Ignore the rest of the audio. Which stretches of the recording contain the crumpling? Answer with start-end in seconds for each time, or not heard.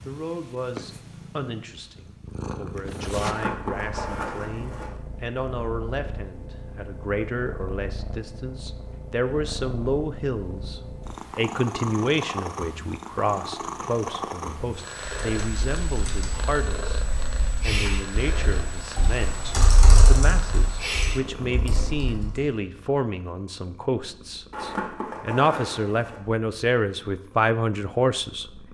3.2-5.0, 24.5-26.2.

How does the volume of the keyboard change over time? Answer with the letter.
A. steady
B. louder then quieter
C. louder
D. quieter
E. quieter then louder
B.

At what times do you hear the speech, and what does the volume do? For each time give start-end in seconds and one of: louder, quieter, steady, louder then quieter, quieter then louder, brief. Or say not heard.
0.1-28.6 louder.